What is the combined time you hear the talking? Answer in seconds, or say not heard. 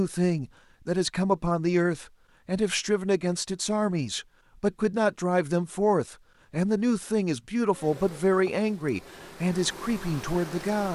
11 s.